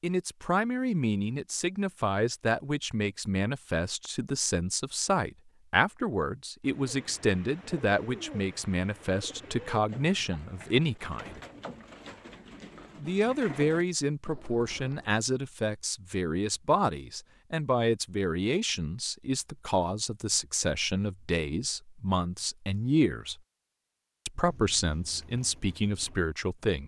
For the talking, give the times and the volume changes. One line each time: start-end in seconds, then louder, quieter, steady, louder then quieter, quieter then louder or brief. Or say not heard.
0.0-11.4 steady
12.9-23.4 steady
24.2-26.8 brief.